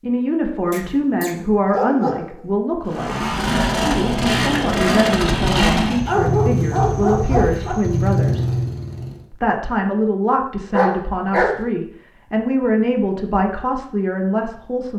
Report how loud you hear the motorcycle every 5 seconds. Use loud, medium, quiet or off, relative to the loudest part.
loud, loud, off.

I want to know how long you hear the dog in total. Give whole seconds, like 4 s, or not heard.
4 s.